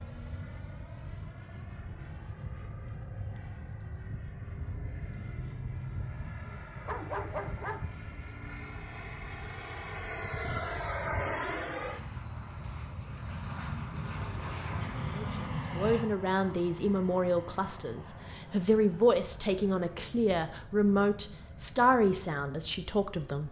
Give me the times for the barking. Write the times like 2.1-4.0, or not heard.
6.4-8.2.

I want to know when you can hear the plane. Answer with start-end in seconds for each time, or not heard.
0.0-23.4.